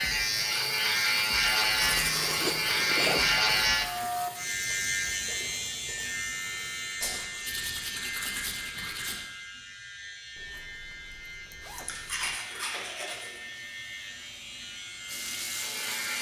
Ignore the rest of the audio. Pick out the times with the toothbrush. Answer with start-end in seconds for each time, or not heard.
1.8-3.5, 7.0-9.2, 11.8-13.4.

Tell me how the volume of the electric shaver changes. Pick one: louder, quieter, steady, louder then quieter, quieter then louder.
quieter.